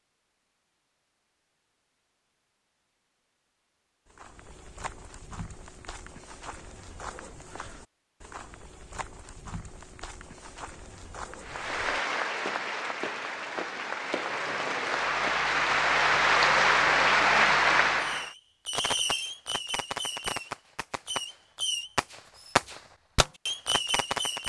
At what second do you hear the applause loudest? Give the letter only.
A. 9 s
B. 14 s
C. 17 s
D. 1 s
C.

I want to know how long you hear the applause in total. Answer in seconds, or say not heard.
7 s.